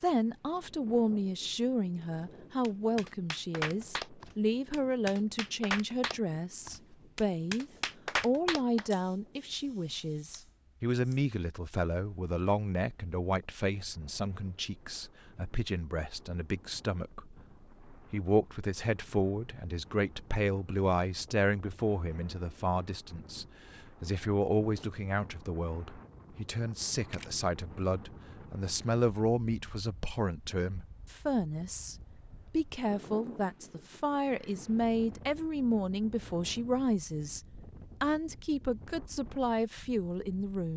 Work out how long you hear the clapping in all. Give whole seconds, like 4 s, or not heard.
6 s.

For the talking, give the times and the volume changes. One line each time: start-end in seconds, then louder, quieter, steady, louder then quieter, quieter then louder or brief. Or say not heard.
0.0-37.4 steady
38.0-40.7 brief.